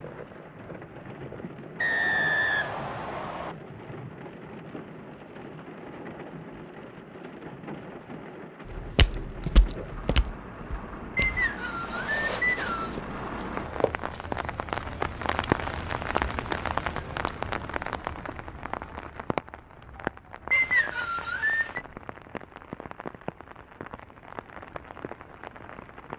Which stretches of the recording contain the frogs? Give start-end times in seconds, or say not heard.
not heard.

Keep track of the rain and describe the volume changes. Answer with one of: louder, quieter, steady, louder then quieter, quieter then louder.
louder then quieter.